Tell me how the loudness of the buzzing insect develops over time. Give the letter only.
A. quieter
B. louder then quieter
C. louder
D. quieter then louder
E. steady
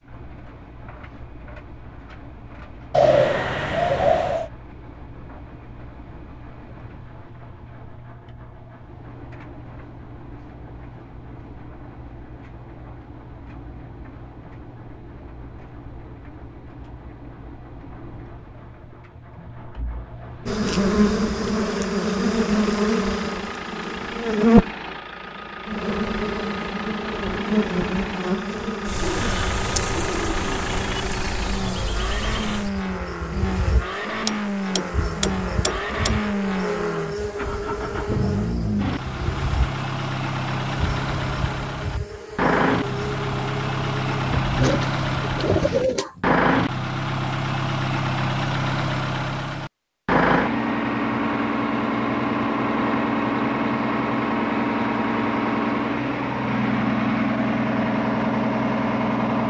A.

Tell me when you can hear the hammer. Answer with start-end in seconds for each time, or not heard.
34.2-36.2.